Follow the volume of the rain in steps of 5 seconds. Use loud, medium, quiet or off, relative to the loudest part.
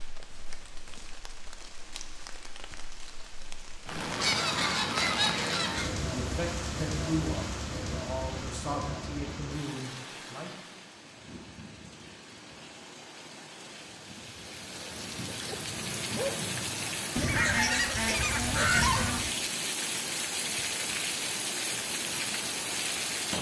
medium, loud, quiet, loud, loud.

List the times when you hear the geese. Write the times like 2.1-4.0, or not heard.
4.2-6.0, 17.1-19.4.